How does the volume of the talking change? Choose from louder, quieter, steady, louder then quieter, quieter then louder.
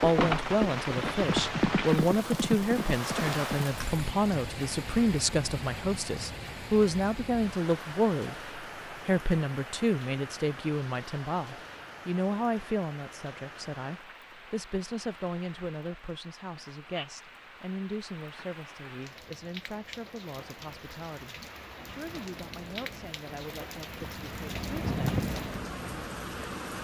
quieter.